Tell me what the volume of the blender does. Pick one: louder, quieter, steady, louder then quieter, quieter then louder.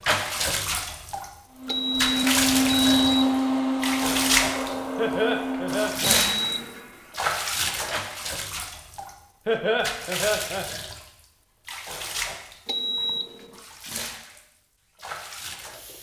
quieter.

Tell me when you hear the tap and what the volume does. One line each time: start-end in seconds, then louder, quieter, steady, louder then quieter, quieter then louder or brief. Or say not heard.
0.0-15.9 quieter.